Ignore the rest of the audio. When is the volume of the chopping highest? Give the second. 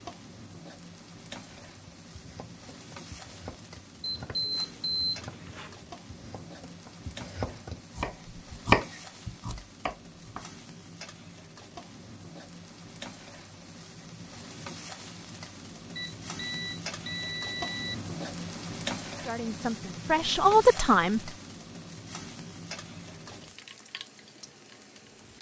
9 s.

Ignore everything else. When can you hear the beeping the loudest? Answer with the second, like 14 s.
5 s.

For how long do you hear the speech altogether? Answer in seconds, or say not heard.
2 s.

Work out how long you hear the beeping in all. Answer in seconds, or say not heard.
4 s.